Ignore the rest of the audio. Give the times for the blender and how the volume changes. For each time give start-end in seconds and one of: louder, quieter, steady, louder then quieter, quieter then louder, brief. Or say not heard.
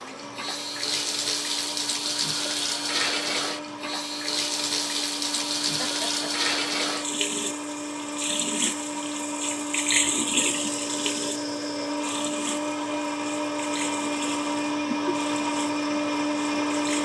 0.0-16.9 louder.